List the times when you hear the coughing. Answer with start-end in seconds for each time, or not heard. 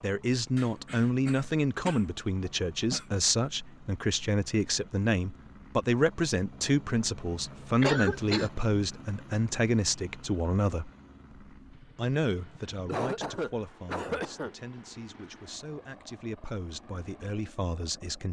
0.6-3.0, 7.8-8.5, 12.8-14.6.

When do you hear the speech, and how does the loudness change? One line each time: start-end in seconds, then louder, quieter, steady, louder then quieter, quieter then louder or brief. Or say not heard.
0.0-10.9 steady
11.8-18.2 quieter then louder.